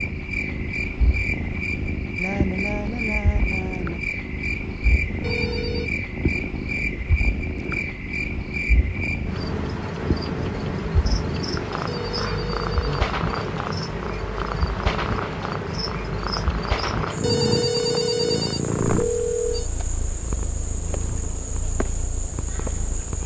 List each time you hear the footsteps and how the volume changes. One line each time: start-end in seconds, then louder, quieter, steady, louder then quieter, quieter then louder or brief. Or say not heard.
not heard.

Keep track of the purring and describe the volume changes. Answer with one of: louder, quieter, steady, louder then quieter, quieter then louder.
steady.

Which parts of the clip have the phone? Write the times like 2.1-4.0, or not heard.
5.2-5.9, 11.8-13.1, 17.2-19.6.